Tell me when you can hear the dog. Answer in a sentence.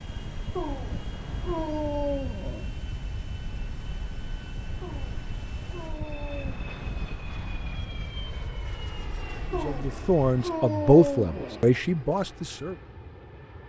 You can hear the dog from 0.6 to 2.6 s, from 4.8 to 6.6 s and from 9.5 to 11.7 s.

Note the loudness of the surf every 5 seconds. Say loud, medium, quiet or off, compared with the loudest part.
loud, loud, off.